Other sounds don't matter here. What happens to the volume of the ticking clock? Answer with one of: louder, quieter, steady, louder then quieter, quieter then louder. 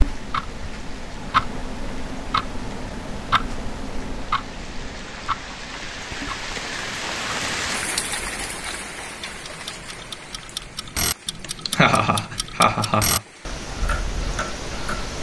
quieter then louder.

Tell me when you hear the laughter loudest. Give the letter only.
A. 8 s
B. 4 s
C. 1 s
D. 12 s
D.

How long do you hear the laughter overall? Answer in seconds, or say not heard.
2 s.